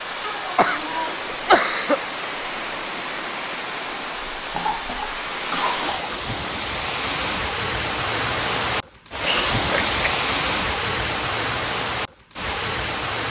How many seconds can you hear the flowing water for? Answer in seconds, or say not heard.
13 s.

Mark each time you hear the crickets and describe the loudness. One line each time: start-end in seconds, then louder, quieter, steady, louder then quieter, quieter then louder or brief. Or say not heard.
not heard.